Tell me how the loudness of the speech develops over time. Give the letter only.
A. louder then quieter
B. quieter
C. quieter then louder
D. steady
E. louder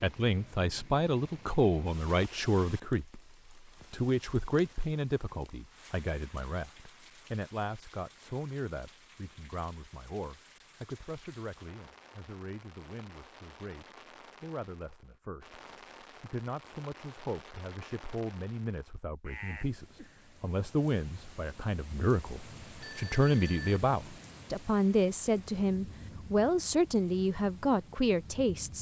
C.